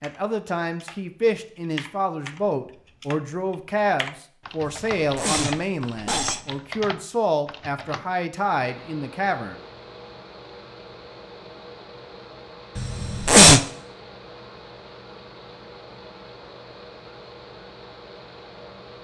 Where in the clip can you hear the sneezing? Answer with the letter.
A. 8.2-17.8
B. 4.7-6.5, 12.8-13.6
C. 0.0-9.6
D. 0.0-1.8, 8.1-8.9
B.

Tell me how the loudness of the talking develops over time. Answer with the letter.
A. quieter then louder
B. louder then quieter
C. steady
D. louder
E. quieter
C.